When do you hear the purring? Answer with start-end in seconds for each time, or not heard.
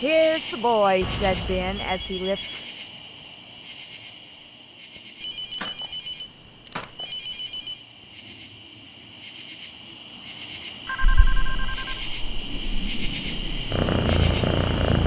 11.0-15.0.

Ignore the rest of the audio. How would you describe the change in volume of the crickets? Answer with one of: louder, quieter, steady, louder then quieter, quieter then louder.
quieter then louder.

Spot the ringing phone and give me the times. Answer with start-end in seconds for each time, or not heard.
1.0-2.7, 5.2-7.8, 10.8-12.0.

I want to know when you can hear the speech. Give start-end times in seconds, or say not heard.
0.0-2.4.